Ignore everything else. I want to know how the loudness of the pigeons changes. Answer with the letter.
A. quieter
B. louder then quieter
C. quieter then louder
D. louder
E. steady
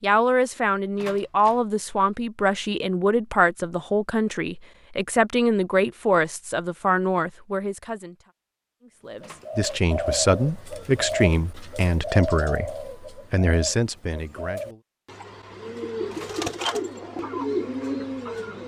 C.